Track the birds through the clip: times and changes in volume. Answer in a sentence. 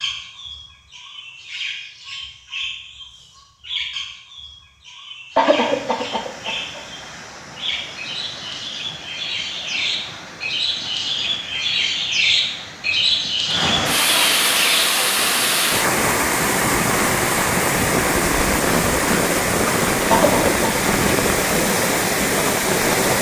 The birds can be heard from 0.0 to 15.4 s, getting louder.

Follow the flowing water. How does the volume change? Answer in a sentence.
The volume of the flowing water goes up.